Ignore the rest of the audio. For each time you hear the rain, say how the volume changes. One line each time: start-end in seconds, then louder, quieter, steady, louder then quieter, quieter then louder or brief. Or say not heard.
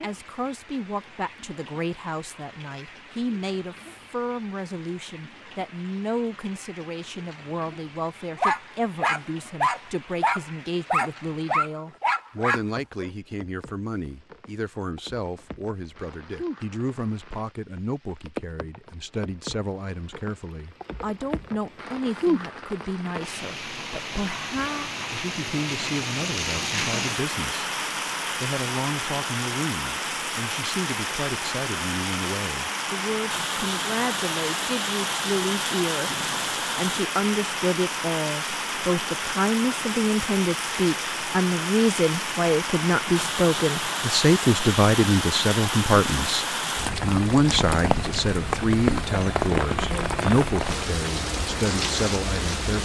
0.0-52.8 louder.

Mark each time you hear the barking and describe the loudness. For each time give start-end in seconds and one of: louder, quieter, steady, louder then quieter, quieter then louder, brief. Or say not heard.
8.3-13.1 steady.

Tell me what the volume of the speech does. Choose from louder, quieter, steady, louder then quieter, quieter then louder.
louder.